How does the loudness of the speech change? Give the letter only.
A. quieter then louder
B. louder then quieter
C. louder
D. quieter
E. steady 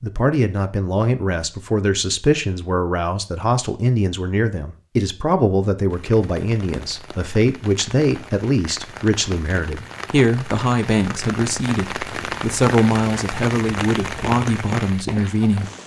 E.